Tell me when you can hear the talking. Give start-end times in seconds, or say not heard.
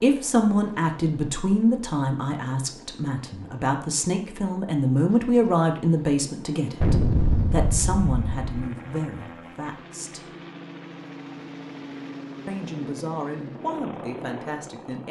0.0-10.2, 12.4-15.0.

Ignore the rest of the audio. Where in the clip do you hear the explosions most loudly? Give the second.
7 s.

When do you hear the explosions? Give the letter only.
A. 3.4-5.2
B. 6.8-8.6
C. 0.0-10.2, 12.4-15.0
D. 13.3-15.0
B.